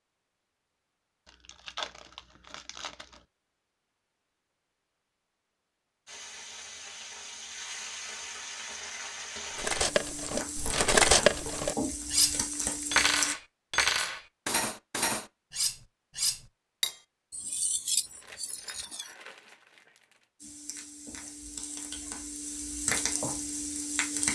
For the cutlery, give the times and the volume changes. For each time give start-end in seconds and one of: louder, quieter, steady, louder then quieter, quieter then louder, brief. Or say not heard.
9.6-19.1 quieter.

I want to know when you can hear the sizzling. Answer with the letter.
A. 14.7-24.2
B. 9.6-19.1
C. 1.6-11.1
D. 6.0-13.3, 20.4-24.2
D.